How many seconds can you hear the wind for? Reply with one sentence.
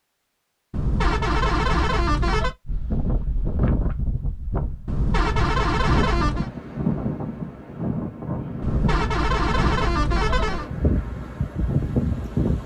You can hear the wind for 10 seconds altogether.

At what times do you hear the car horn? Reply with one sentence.
You can hear the car horn from 0.7 to 2.5 s, from 4.8 to 6.5 s and from 8.6 to 10.7 s.